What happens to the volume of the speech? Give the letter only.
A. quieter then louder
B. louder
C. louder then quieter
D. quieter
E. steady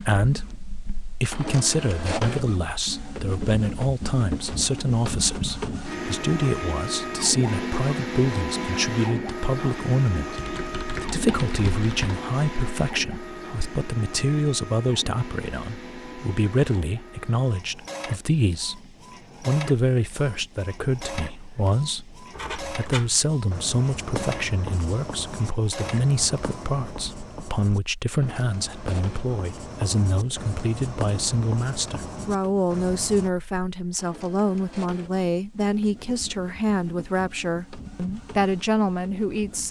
E.